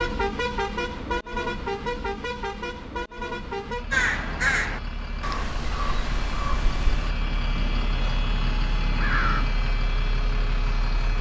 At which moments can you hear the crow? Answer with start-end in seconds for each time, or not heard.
3.9-9.5.